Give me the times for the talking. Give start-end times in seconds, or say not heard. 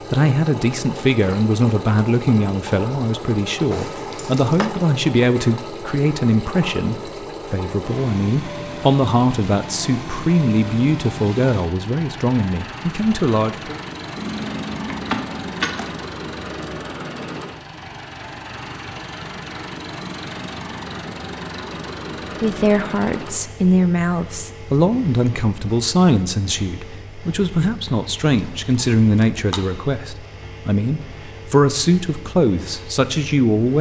0.1-13.8, 22.4-33.7.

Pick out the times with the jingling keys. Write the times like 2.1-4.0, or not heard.
3.7-4.7, 14.2-15.9, 28.4-29.8.